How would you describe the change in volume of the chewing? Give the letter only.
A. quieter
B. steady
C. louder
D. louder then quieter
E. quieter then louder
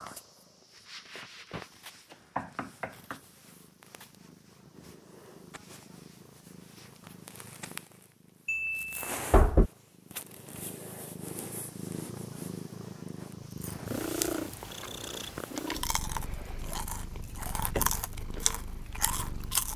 C.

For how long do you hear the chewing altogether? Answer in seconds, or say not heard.
6 s.